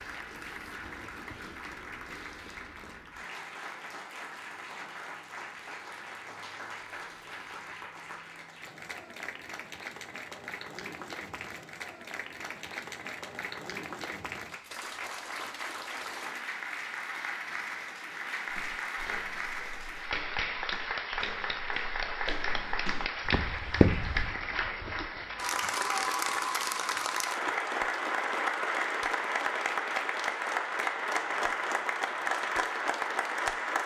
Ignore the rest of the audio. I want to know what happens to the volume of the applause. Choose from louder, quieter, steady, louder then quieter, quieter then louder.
louder.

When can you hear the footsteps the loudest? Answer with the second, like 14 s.
24 s.